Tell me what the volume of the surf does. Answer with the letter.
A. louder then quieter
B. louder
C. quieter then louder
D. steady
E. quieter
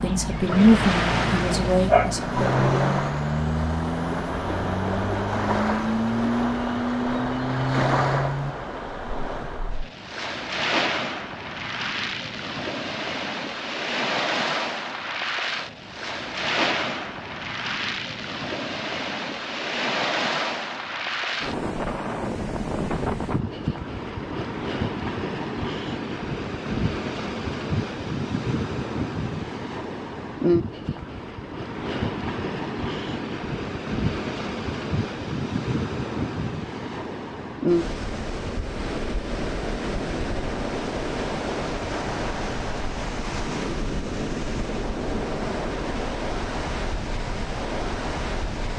D.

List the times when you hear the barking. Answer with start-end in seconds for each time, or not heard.
0.5-2.5.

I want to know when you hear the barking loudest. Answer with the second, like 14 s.
2 s.